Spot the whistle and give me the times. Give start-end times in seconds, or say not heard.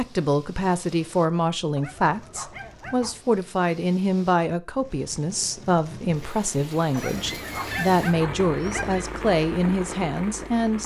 not heard.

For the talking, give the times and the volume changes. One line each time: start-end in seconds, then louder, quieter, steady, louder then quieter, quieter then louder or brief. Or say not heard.
0.0-10.8 steady.